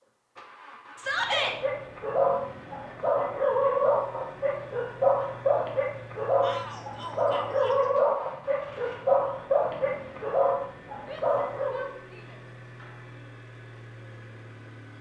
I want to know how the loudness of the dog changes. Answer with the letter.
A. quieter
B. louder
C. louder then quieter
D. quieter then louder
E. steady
E.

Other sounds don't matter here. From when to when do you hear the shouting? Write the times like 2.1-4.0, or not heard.
0.9-1.6, 6.4-7.9, 11.1-12.4.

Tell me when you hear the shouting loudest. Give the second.
1 s.